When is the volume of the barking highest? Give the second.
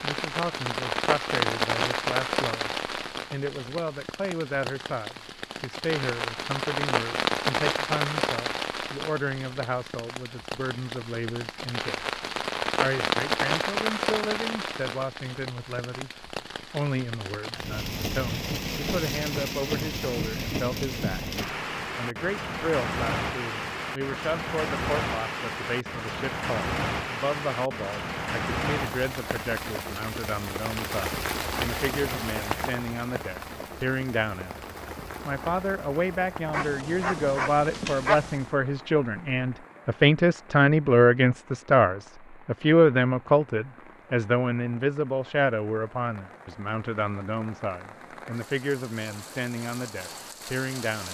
38 s.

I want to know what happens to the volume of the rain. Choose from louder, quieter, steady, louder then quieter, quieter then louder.
quieter.